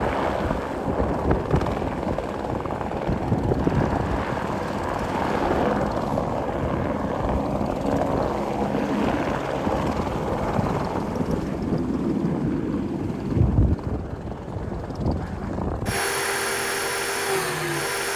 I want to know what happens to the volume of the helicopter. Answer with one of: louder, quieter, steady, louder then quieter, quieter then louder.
steady.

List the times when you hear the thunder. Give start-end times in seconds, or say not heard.
10.3-11.8.